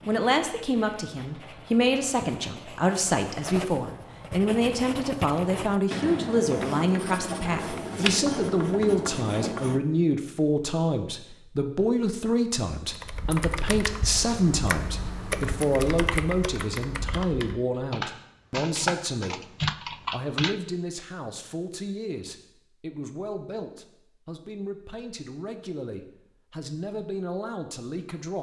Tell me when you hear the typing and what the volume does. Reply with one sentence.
The typing can be heard from 12.9 to 20.6 s, getting louder.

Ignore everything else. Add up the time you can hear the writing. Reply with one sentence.
The writing can be heard for 10 seconds in total.